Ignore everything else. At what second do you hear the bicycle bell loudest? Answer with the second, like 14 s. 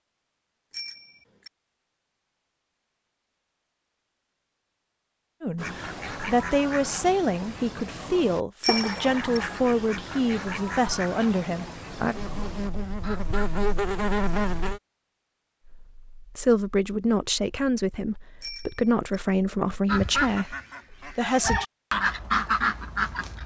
9 s.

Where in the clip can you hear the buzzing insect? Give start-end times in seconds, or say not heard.
12.1-14.8.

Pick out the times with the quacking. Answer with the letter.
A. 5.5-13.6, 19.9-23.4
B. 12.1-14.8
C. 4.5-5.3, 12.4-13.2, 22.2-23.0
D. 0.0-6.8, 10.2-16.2
A.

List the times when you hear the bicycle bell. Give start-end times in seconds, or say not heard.
0.7-1.5, 8.6-9.4, 18.4-19.2.